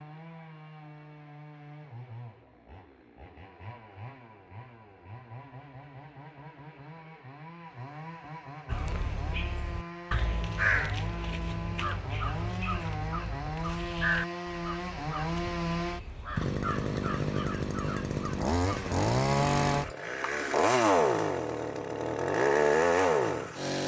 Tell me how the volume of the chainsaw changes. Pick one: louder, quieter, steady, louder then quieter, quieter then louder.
louder.